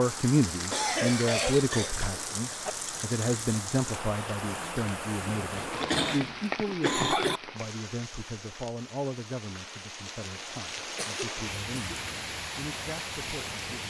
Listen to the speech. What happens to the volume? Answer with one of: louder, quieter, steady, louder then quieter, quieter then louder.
quieter.